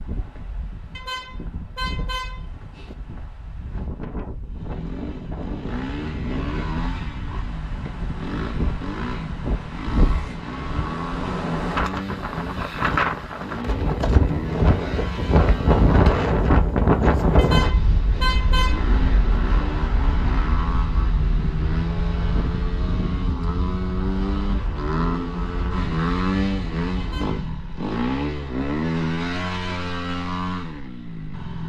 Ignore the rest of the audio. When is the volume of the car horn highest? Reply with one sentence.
The loudest moment of the car horn is at 18 seconds.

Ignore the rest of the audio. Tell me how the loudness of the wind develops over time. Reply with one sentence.
The volume of the wind goes up, then down.